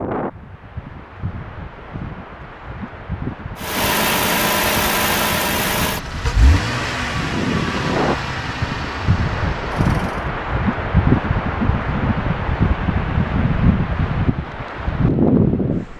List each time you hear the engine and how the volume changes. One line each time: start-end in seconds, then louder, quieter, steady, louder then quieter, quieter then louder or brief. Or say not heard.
3.5-10.3 quieter.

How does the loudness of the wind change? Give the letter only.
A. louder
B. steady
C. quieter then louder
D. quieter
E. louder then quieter
A.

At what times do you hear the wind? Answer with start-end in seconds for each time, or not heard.
0.0-15.9.